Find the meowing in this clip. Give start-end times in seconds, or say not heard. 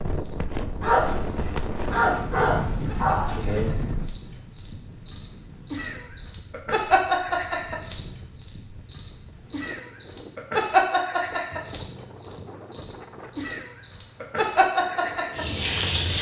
not heard.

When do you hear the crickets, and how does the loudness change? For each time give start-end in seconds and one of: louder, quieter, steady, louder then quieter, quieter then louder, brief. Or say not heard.
0.1-16.1 louder.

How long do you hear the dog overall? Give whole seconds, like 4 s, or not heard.
3 s.